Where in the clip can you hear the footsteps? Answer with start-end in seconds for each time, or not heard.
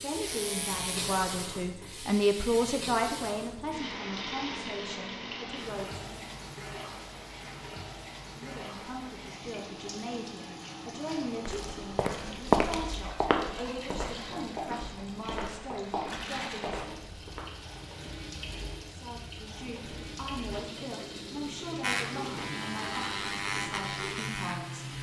11.4-17.4.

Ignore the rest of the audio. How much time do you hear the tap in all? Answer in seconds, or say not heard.
25 s.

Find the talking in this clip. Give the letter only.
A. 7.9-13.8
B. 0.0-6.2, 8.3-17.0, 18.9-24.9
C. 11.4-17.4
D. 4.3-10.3
B.